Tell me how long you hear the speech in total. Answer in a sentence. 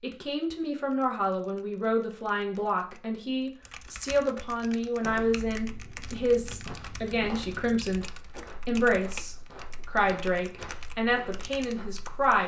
The speech can be heard for 12 seconds in total.